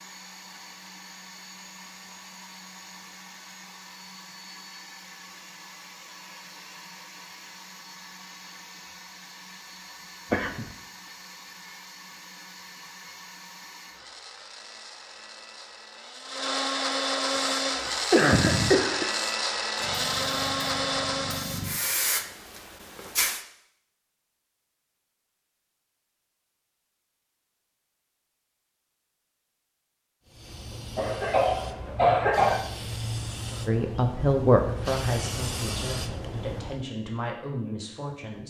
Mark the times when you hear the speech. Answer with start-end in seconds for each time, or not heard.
33.6-38.4.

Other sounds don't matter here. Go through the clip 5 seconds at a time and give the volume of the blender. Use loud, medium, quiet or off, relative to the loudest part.
quiet, quiet, quiet, loud, loud, off, off, off.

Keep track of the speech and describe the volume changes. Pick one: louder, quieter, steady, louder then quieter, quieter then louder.
quieter.